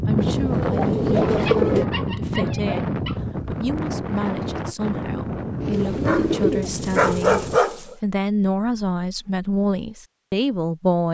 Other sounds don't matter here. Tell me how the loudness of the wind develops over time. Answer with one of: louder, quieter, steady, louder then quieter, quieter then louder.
quieter.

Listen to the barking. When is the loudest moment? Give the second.
7 s.